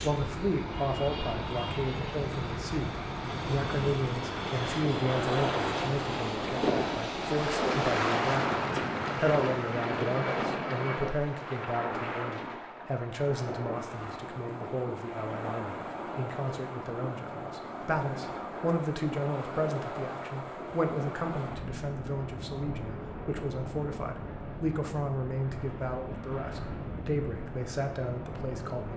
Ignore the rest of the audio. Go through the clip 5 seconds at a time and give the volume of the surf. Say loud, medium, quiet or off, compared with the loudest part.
medium, loud, medium, medium, medium, medium.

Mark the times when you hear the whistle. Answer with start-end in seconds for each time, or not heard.
not heard.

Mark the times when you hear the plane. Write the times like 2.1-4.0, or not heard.
0.0-11.2.